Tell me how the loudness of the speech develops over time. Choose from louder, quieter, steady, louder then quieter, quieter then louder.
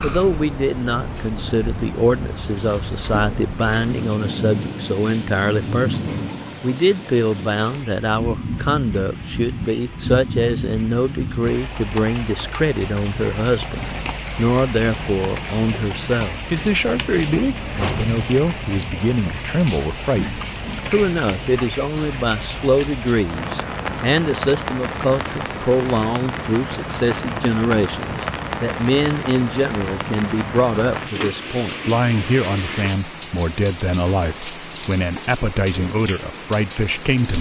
steady.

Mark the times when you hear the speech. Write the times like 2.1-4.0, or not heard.
0.0-37.3.